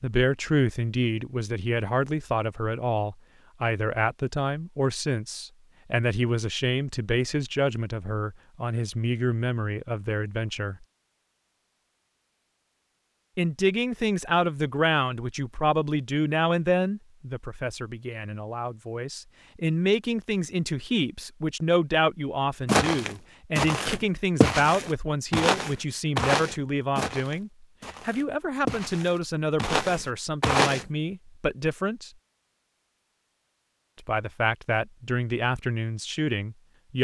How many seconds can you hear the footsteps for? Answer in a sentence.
You can hear the footsteps for 8 seconds altogether.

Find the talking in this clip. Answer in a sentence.
The talking can be heard from 0.0 to 10.8 s, from 13.3 to 32.1 s and from 34.0 to 36.9 s.